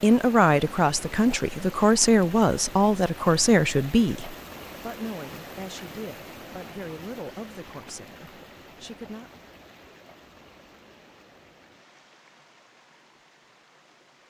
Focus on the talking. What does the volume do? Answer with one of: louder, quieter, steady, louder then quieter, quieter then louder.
quieter.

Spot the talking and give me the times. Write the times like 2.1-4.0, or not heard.
0.0-9.4.